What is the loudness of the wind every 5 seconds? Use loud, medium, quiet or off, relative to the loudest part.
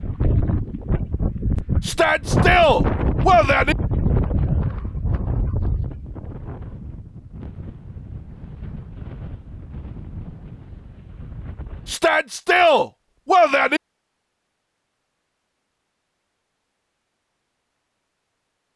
loud, medium, quiet, off.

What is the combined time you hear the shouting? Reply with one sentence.
You can hear the shouting for 4 seconds altogether.